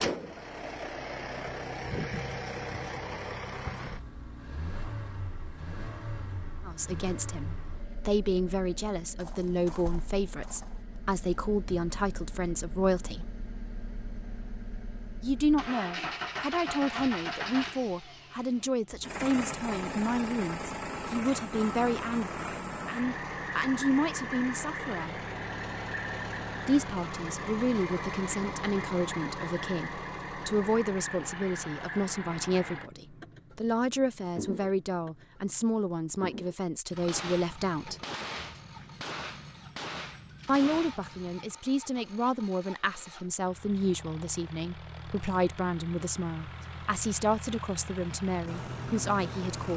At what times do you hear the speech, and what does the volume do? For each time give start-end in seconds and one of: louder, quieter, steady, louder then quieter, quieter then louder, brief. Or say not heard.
6.7-13.3 steady
15.2-25.1 steady
26.6-38.0 steady
40.5-49.7 steady.